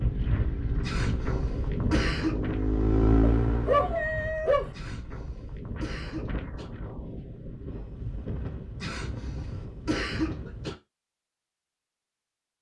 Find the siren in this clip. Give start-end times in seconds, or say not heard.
not heard.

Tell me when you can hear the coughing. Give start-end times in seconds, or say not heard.
0.8-2.4, 4.7-6.7, 8.8-10.8.